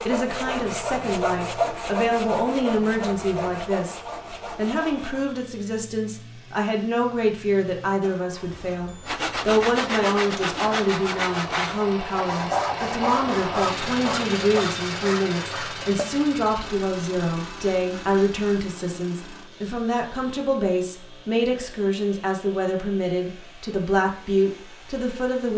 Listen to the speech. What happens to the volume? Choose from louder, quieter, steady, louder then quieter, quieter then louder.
steady.